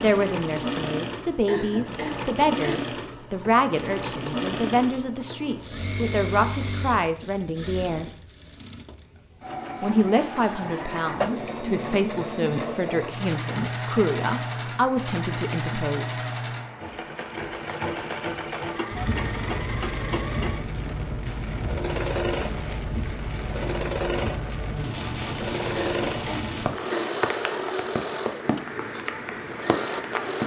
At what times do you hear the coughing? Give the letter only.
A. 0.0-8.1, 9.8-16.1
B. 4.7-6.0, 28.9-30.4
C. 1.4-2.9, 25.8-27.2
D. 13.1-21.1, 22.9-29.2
C.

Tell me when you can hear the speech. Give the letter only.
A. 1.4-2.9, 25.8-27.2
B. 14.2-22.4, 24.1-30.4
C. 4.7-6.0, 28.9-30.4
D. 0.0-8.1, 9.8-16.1
D.